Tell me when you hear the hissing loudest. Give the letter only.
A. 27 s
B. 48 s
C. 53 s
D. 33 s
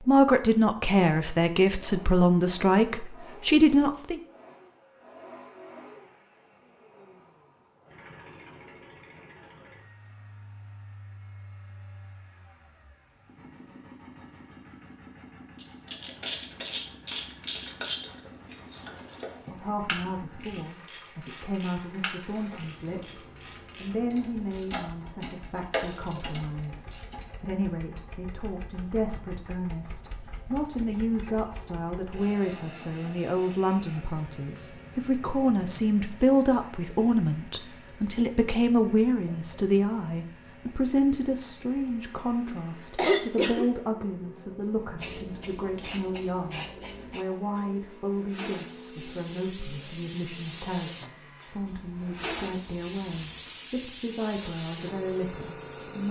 C.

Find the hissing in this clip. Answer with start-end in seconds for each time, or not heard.
45.0-56.0.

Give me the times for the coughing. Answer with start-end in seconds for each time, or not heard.
42.5-43.6.